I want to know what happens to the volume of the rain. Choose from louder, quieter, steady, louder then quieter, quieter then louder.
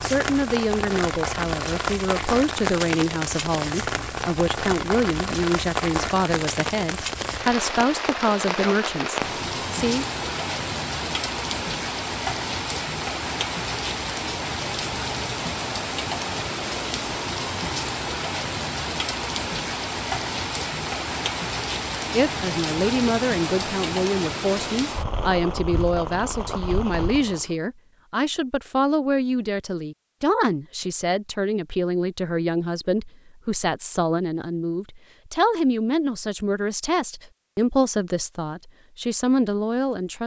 steady.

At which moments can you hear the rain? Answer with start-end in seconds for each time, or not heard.
0.0-27.6.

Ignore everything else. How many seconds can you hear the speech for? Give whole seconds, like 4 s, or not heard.
28 s.